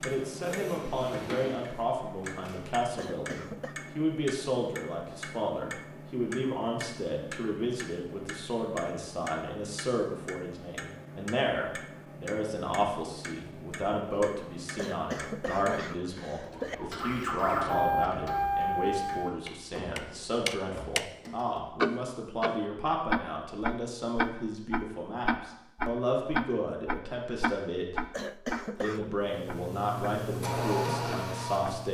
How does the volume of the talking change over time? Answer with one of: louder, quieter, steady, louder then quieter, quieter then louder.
steady.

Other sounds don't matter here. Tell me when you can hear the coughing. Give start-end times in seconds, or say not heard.
3.0-3.8, 14.8-16.8, 28.1-29.0.